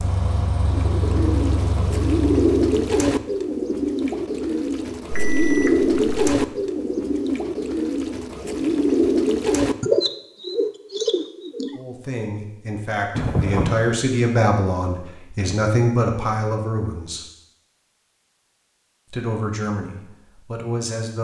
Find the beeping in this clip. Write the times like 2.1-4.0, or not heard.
5.1-6.3, 13.2-13.8.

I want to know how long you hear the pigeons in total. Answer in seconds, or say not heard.
11 s.